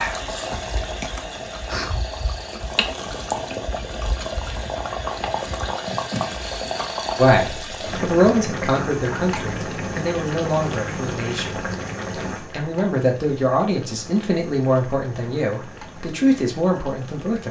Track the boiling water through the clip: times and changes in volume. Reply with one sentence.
You can hear the boiling water from 0.0 to 17.4 s, getting quieter.